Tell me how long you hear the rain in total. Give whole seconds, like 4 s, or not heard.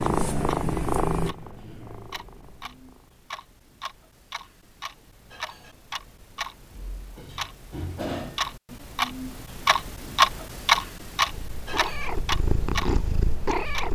not heard.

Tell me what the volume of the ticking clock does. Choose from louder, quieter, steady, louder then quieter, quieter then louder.
louder then quieter.